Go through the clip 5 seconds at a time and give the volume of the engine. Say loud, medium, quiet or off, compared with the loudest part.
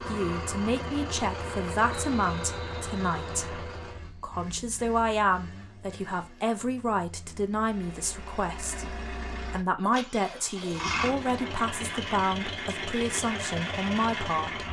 loud, medium, loud.